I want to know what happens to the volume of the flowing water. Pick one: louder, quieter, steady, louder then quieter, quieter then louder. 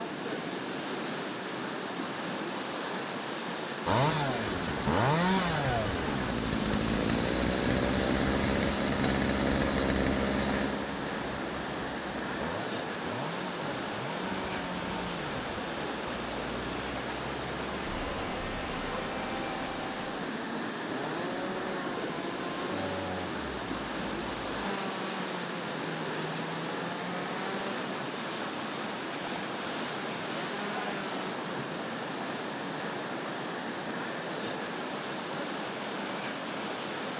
steady.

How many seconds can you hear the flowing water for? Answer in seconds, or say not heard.
37 s.